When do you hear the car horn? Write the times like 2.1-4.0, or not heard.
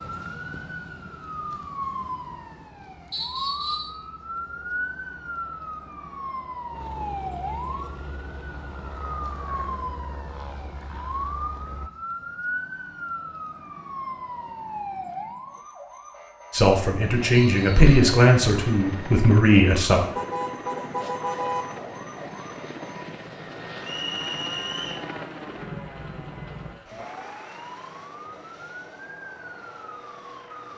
20.1-21.6.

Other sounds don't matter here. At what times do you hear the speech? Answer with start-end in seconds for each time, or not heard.
16.5-20.0.